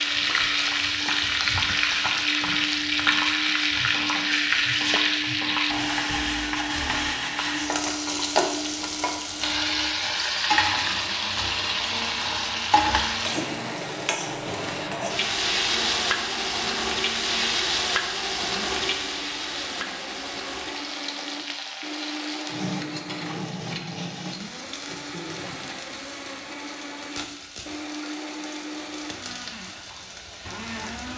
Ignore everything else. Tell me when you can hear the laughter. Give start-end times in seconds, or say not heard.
not heard.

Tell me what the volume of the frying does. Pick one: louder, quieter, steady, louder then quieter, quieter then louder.
quieter.